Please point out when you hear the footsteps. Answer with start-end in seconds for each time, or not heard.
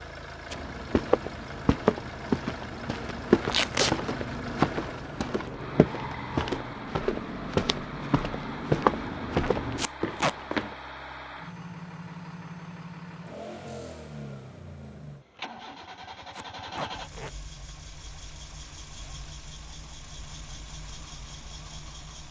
0.5-10.8.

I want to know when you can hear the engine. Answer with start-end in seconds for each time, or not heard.
0.0-22.2.